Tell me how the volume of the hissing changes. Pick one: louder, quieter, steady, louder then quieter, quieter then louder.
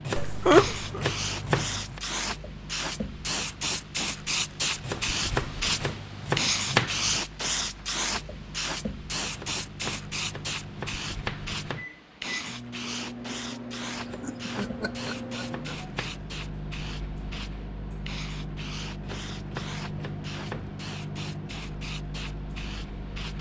quieter.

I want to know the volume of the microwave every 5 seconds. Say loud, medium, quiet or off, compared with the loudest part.
medium, medium, loud, loud, loud.